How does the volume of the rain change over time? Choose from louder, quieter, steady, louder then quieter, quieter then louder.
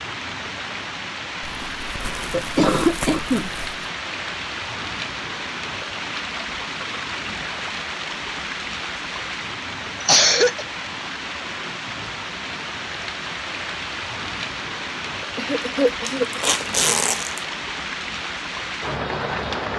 steady.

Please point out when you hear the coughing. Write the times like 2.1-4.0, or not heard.
2.0-3.5, 10.0-10.7, 15.3-16.4.